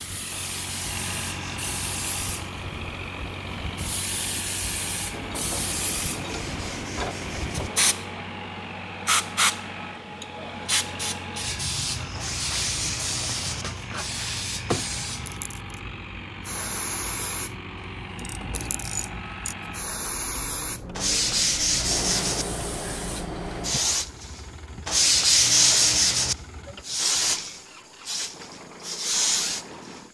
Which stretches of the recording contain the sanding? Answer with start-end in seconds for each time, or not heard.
0.3-1.8, 6.2-7.7, 12.2-13.7, 20.9-22.4, 24.9-26.4.